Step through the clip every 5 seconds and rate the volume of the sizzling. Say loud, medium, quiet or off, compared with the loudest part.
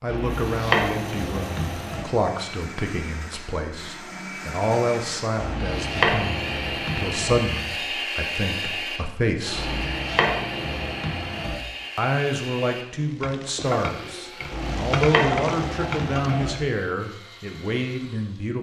off, off, loud, loud.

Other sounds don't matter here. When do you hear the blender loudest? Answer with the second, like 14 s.
8 s.